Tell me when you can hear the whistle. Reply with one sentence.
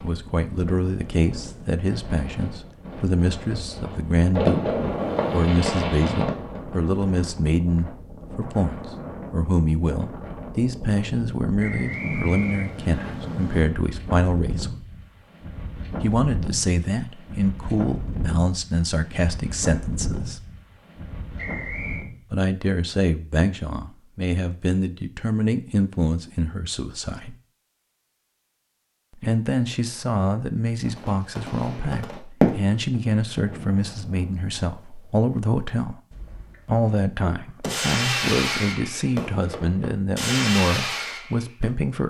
You can hear the whistle from 11.6 to 13.2 s and from 21.4 to 22.1 s.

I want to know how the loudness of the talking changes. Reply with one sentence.
The loudness of the talking stays about the same.